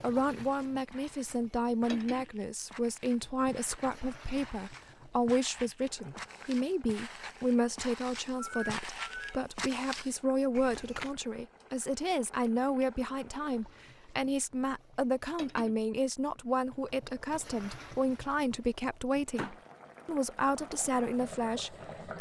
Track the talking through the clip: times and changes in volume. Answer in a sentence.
The talking can be heard from 0.0 to 22.1 s, at a steady volume.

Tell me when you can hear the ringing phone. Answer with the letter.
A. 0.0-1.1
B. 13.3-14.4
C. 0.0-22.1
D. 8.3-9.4
D.